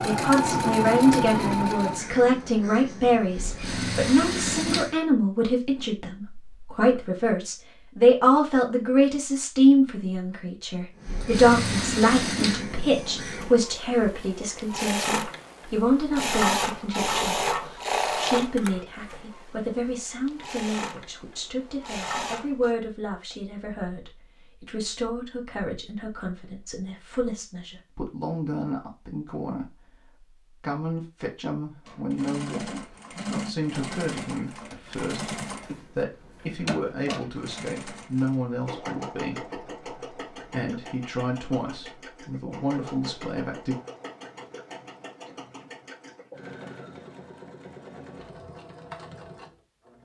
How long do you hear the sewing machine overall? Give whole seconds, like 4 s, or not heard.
35 s.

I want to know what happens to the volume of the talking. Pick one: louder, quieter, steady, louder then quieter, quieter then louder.
quieter.